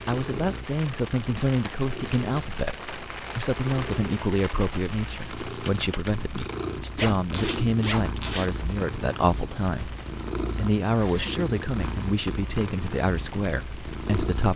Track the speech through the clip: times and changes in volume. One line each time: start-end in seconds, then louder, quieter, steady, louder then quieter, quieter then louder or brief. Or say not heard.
0.1-14.5 steady.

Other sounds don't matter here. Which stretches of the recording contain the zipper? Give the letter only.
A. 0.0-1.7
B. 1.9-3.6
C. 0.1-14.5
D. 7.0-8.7
D.